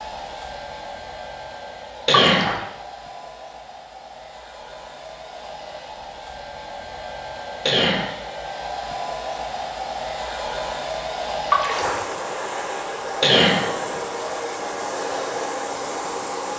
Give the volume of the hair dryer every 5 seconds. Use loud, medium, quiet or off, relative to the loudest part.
medium, medium, loud, loud.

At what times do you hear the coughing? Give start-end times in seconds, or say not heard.
2.0-2.5, 7.7-8.2, 13.2-13.7.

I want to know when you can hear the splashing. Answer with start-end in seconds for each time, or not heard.
2.1-2.6, 11.5-12.0.